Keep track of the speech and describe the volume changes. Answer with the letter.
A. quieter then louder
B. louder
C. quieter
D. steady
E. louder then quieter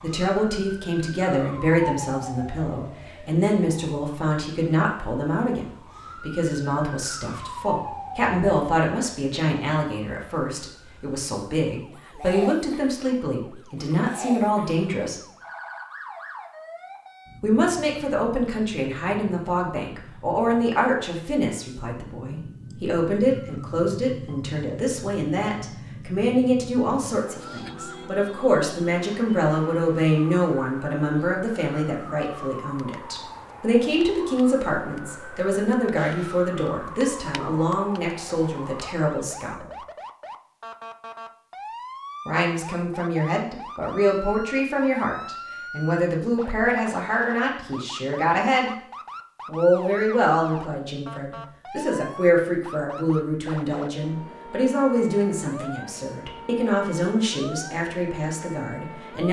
D.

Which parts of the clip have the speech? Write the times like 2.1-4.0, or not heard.
0.0-15.2, 17.4-39.7, 42.2-48.8, 49.5-59.2.